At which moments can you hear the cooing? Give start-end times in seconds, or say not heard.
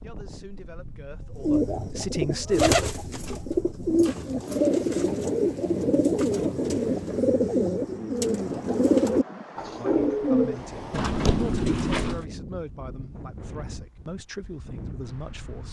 1.4-12.2.